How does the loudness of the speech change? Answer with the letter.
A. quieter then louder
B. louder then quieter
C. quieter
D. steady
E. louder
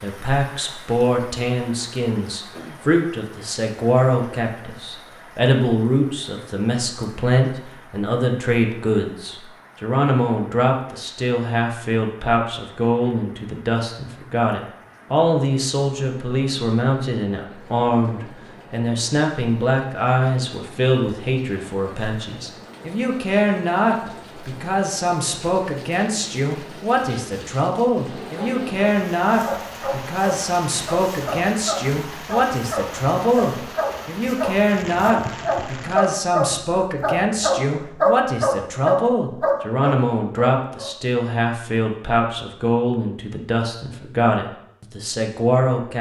D.